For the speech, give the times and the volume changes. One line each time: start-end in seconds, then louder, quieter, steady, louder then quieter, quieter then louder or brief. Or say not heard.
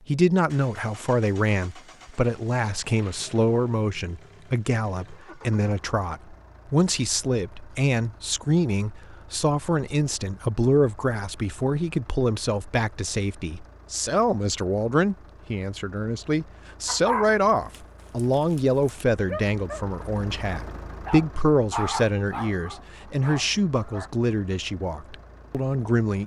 0.1-26.2 steady.